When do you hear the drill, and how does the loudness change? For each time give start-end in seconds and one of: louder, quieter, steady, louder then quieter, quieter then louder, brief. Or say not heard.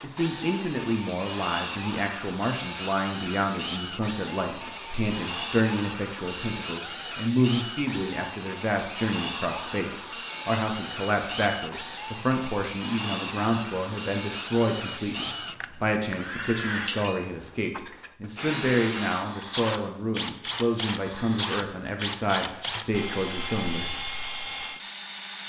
0.0-25.4 steady.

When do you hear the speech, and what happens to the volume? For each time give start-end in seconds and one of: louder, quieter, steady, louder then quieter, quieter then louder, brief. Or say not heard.
0.0-24.0 steady.